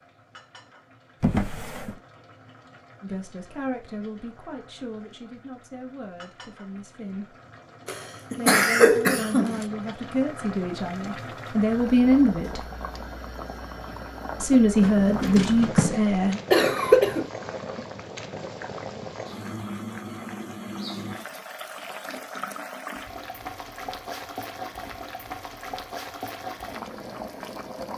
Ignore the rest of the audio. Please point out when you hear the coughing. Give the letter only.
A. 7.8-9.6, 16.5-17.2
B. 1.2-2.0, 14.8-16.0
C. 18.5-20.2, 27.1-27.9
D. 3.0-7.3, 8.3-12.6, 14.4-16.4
A.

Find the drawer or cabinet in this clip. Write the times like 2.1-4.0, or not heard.
1.2-2.0, 14.8-16.0.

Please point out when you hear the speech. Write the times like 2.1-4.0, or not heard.
3.0-7.3, 8.3-12.6, 14.4-16.4.